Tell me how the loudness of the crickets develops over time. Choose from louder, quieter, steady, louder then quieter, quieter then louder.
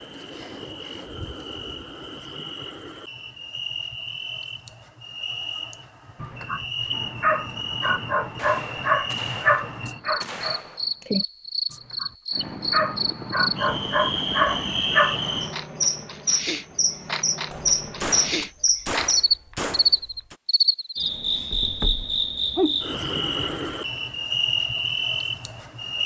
louder.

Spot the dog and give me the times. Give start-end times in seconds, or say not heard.
6.2-15.5.